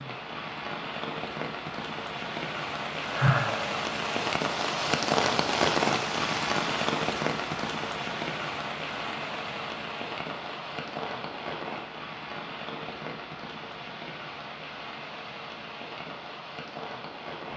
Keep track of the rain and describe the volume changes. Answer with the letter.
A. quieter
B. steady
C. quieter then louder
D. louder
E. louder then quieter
E.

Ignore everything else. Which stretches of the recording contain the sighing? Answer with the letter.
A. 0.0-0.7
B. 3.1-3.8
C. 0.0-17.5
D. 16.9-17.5
B.